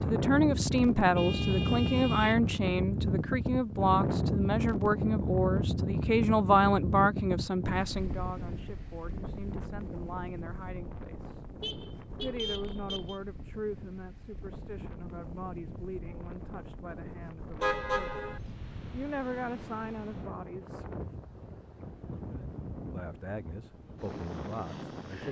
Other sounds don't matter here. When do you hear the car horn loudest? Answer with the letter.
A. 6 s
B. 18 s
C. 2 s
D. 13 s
B.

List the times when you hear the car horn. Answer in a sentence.
The car horn can be heard from 1.1 to 2.4 s, from 11.6 to 13.2 s and from 17.6 to 18.4 s.